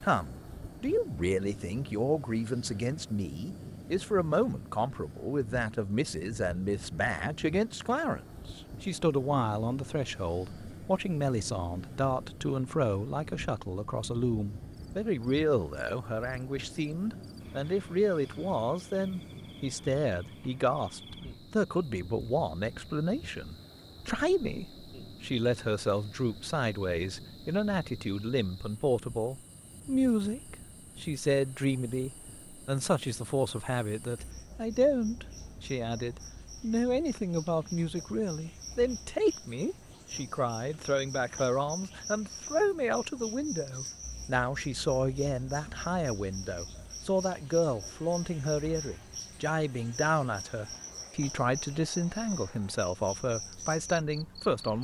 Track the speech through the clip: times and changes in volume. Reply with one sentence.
You can hear the speech from 0.0 to 54.7 s, at a steady volume.